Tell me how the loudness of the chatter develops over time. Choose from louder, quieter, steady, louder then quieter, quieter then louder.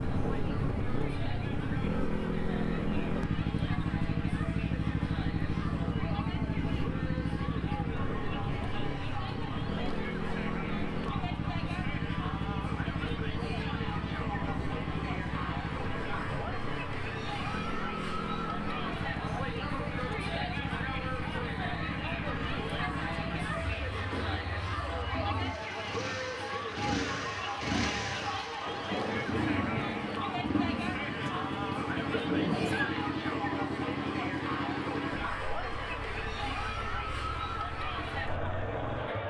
louder.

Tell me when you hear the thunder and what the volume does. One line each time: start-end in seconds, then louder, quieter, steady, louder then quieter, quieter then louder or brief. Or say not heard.
28.6-32.9 quieter then louder.